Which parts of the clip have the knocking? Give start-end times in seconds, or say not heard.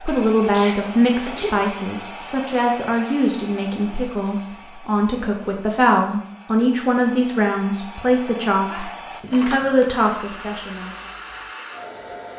not heard.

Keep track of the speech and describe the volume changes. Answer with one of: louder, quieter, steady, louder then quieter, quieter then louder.
steady.